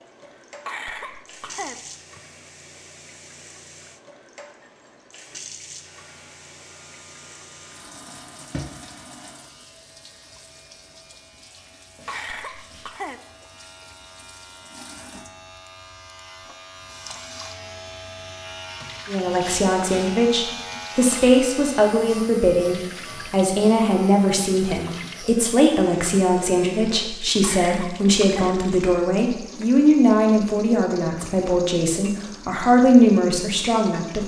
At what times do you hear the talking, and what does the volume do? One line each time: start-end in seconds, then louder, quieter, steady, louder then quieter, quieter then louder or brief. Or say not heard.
19.1-34.2 steady.